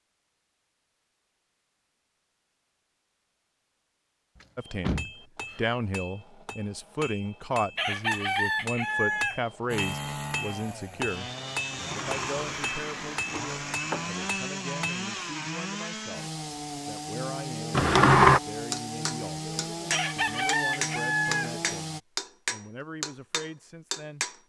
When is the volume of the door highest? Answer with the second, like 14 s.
18 s.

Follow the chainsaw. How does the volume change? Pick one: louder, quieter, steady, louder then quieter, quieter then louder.
steady.